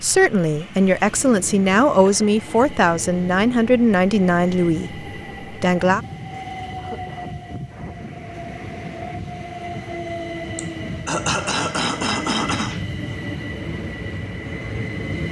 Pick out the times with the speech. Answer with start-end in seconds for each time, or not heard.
0.0-6.0.